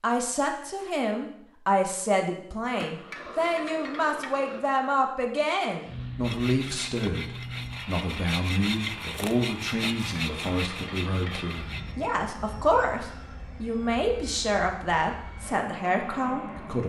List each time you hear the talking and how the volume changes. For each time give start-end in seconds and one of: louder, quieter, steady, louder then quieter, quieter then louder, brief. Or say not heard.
0.0-16.8 steady.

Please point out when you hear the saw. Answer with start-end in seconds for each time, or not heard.
6.2-11.9.